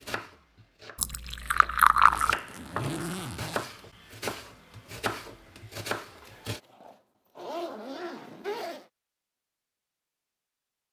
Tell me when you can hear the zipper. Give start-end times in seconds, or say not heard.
2.1-3.7, 6.2-8.8.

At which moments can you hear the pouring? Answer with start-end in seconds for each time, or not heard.
0.9-2.4.